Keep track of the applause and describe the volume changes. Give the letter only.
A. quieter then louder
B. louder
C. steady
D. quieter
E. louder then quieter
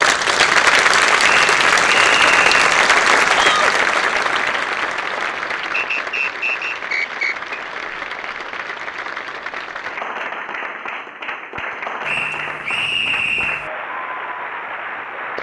D.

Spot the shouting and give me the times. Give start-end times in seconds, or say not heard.
3.3-3.7.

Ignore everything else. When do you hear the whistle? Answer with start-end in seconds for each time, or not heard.
1.2-2.8, 5.7-7.5, 12.1-13.7.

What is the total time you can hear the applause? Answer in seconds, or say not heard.
15 s.